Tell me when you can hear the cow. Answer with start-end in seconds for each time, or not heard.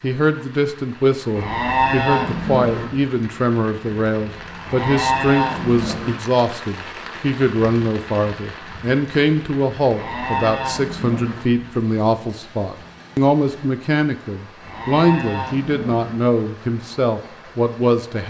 1.4-2.9, 4.7-6.2, 9.8-11.4, 14.6-16.1.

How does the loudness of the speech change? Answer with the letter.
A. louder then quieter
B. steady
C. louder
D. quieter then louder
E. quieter
B.